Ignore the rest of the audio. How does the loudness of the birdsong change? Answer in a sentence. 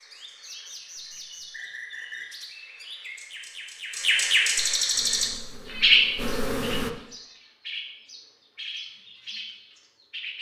The loudness of the birdsong goes up, then down.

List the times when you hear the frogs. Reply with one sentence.
You can't hear the frogs here.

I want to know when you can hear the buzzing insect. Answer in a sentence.
You can hear the buzzing insect from 4.9 to 6.9 s.